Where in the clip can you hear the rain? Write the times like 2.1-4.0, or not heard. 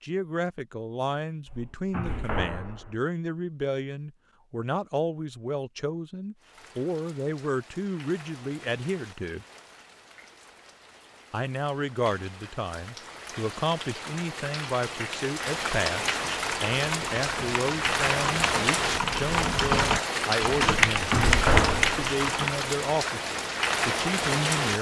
6.3-24.7.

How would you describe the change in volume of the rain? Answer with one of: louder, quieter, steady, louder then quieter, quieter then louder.
louder.